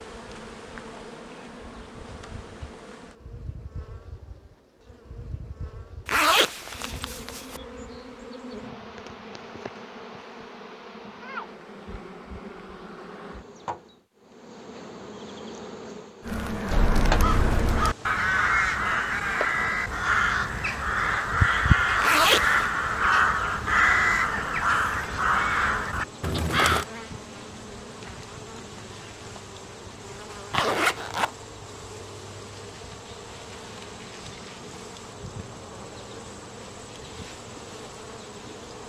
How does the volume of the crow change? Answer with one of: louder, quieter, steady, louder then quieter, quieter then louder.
steady.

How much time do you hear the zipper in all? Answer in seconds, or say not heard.
3 s.